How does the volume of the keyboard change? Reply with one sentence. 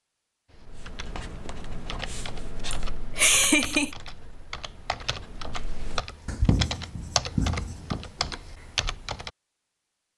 The loudness of the keyboard goes up.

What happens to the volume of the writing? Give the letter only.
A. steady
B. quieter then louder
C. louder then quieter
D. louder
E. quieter
B.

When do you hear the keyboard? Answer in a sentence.
You can hear the keyboard from 0.5 to 9.3 s.